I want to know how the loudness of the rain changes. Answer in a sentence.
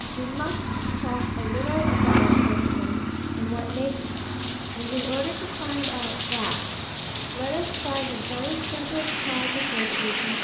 The loudness of the rain goes up.